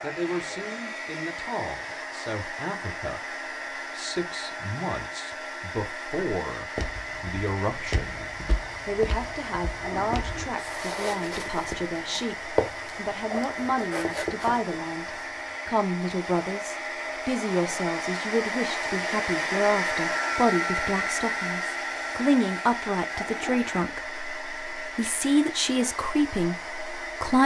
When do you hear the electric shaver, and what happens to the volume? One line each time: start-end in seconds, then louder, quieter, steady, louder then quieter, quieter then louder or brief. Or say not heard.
not heard.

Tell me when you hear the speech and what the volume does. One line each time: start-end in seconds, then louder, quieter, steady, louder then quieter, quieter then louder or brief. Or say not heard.
0.0-27.4 louder.